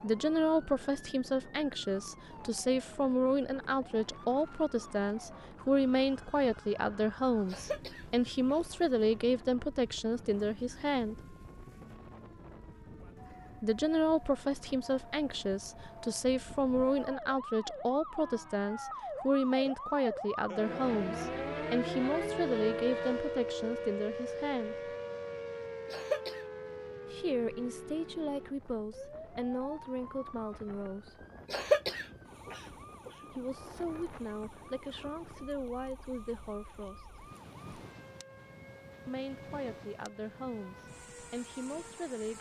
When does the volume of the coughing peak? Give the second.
32 s.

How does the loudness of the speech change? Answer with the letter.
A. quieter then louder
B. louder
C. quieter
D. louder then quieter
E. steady
C.